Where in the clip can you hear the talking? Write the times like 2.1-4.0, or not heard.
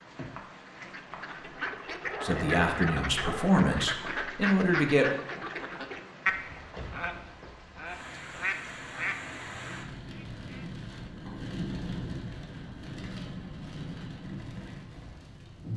2.2-5.2.